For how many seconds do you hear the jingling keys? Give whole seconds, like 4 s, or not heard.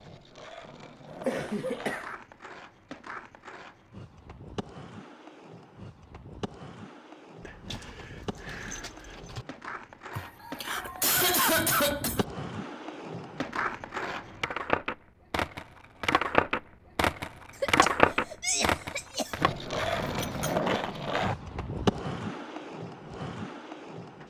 3 s.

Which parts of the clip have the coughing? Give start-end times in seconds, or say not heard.
1.2-2.1, 10.1-12.2, 17.6-19.4.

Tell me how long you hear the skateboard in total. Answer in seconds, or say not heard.
24 s.